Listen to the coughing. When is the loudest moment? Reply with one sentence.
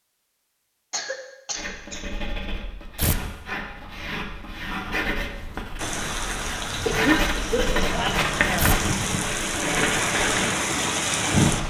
The volume of the coughing peaks at 7 seconds.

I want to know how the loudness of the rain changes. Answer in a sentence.
The loudness of the rain goes up.